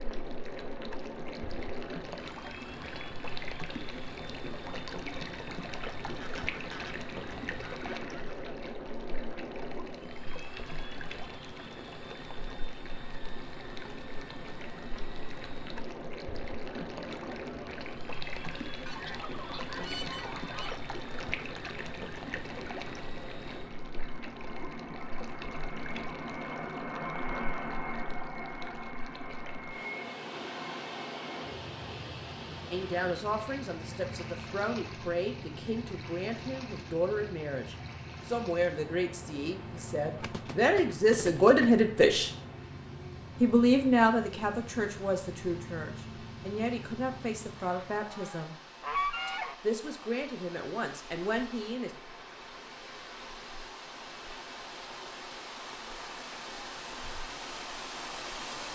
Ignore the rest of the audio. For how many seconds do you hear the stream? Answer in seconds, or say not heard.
59 s.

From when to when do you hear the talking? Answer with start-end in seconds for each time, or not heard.
32.7-42.3, 43.4-48.5, 49.2-51.9.